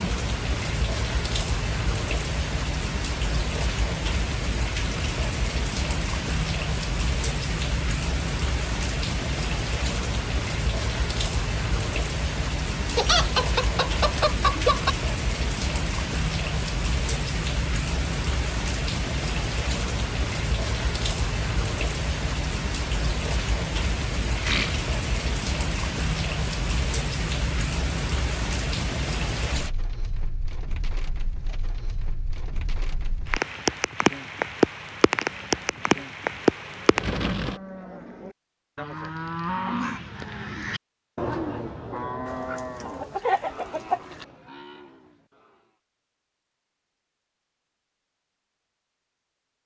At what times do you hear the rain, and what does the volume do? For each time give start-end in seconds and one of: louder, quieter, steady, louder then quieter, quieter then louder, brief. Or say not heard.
0.0-37.6 steady.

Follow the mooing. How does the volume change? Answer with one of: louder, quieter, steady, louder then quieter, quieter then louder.
louder then quieter.